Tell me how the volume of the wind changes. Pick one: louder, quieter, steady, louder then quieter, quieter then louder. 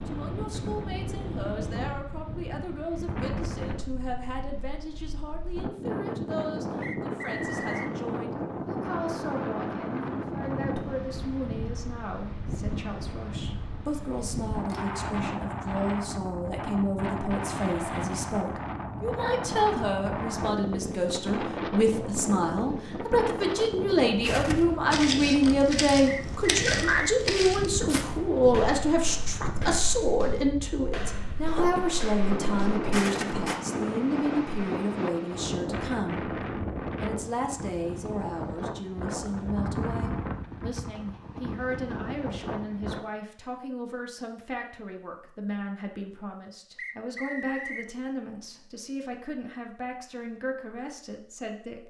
steady.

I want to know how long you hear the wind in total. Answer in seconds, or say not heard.
43 s.